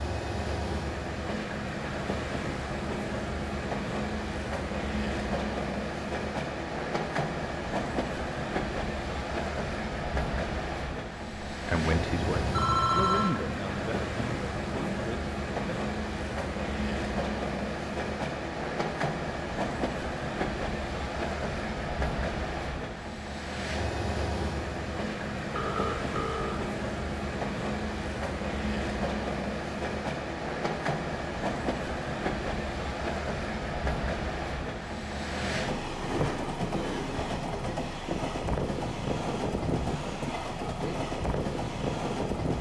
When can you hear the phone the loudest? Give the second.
13 s.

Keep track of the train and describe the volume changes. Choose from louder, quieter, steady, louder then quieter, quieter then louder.
steady.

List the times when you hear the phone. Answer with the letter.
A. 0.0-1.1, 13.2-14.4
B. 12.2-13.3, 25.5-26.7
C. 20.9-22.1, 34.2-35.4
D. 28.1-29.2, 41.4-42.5
B.